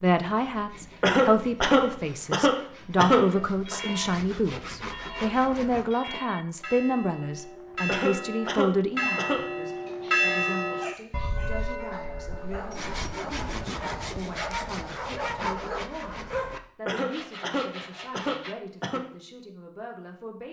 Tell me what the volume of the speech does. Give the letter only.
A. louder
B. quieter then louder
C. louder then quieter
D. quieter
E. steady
D.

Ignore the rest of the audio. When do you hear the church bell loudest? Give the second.
10 s.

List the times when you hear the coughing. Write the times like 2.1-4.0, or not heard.
1.0-3.8, 7.8-9.5, 16.9-19.0.